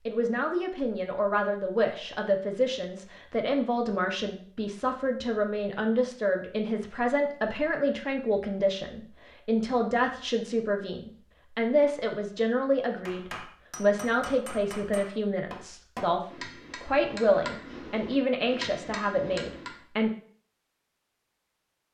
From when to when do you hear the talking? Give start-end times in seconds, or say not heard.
0.0-20.1.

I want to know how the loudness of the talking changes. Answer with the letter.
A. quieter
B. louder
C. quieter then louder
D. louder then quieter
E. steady
E.